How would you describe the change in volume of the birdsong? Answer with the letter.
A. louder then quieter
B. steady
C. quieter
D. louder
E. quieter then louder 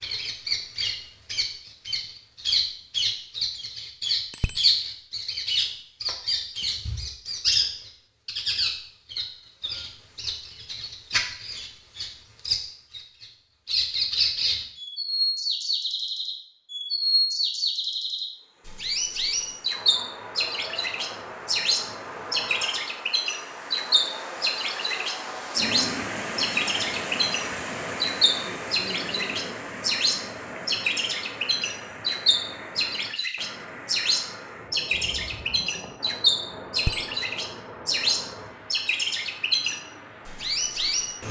B.